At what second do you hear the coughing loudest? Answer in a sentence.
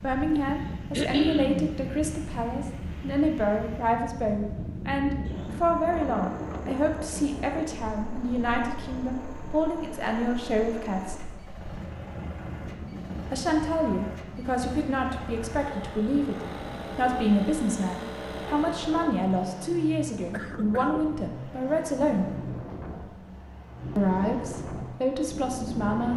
The volume of the coughing peaks at 1 second.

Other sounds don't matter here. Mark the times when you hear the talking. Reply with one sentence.
You can hear the talking from 0.0 to 11.2 s, from 13.3 to 22.3 s and from 23.9 to 26.1 s.